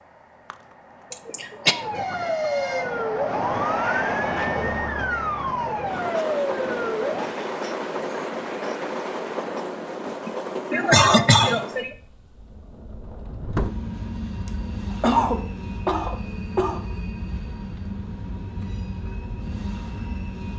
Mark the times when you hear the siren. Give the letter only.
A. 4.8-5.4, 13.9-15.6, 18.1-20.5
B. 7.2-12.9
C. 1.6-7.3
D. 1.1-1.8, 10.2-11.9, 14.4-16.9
C.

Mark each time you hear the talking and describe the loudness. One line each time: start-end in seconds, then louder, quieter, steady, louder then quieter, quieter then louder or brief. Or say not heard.
not heard.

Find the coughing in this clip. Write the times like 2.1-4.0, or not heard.
1.1-1.8, 10.2-11.9, 14.4-16.9.